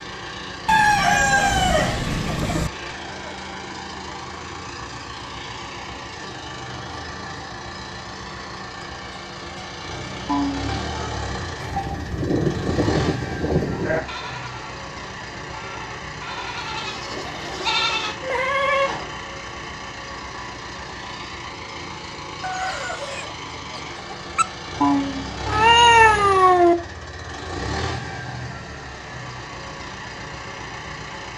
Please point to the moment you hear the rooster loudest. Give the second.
1 s.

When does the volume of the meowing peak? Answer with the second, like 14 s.
26 s.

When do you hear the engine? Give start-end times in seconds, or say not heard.
0.0-31.3.